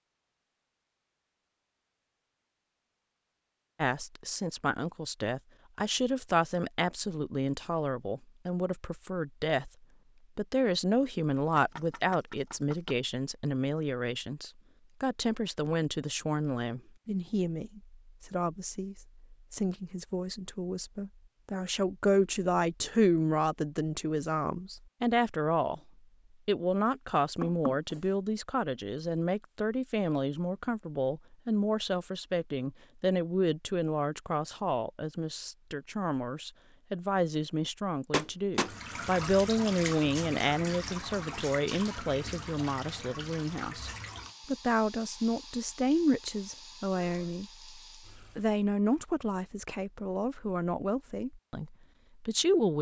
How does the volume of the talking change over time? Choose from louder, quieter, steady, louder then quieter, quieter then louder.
steady.